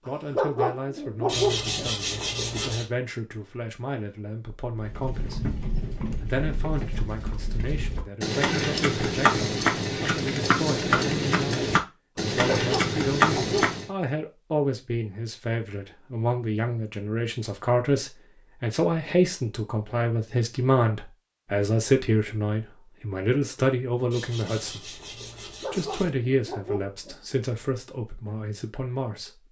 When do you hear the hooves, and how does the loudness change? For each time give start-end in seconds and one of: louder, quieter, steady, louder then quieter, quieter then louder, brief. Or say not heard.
4.8-13.9 louder.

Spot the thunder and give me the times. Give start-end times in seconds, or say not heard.
not heard.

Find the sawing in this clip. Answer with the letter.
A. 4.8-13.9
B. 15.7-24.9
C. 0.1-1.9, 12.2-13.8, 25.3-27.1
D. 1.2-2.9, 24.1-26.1
D.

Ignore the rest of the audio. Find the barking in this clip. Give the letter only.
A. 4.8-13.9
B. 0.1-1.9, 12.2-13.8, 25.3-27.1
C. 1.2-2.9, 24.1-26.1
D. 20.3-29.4
B.